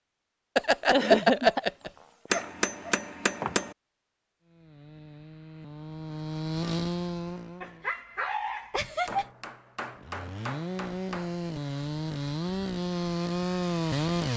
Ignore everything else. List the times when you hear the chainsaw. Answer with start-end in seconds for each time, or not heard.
4.4-7.9, 9.9-14.3.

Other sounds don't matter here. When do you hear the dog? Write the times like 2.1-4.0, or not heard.
0.6-3.0, 7.6-9.3.